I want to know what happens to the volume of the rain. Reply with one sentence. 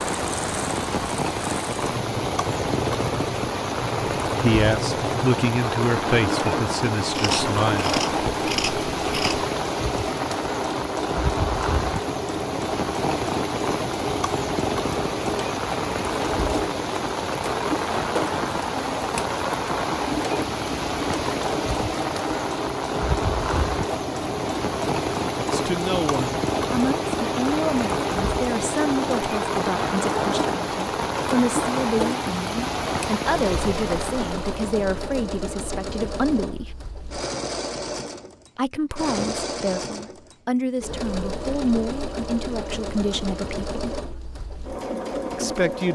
The loudness of the rain stays about the same.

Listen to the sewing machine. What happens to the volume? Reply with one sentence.
The loudness of the sewing machine stays about the same.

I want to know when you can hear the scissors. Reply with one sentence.
You can hear the scissors from 7.1 to 9.5 s.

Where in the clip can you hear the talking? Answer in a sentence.
You can hear the talking from 4.4 to 8.0 s, from 25.5 to 36.7 s, from 38.5 to 44.0 s and from 45.3 to 45.9 s.